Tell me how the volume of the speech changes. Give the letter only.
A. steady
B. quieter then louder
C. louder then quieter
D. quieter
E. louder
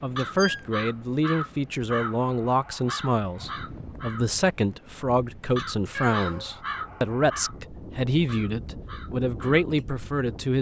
A.